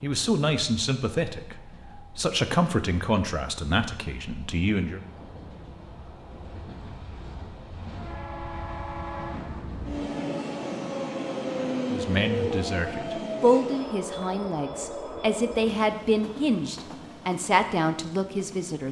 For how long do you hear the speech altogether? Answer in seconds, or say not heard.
12 s.